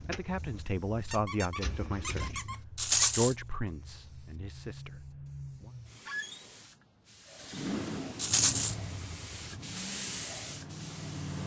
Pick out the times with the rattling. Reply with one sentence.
You can hear the rattling from 2.8 to 3.4 s and from 8.2 to 8.8 s.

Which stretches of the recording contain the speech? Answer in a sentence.
You can hear the speech from 0.0 to 5.7 s.